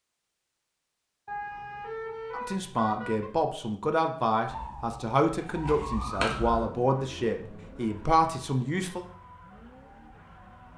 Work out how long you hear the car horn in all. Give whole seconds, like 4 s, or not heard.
2 s.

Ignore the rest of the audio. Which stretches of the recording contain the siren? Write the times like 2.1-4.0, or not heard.
4.5-6.7.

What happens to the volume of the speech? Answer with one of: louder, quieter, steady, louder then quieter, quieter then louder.
steady.